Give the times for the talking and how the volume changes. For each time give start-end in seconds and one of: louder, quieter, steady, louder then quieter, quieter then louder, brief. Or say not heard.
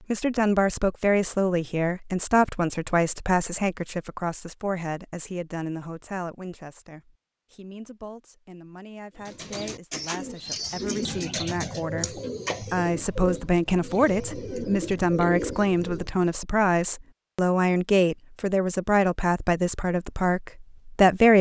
0.1-21.3 quieter then louder.